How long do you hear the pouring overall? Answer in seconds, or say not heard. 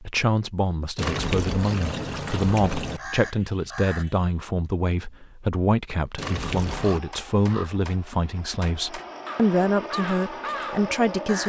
3 s.